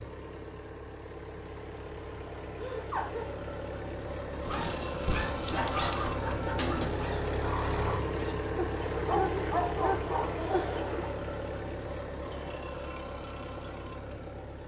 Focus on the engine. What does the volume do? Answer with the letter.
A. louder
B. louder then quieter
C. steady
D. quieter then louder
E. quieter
B.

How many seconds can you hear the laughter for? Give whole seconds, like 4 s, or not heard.
3 s.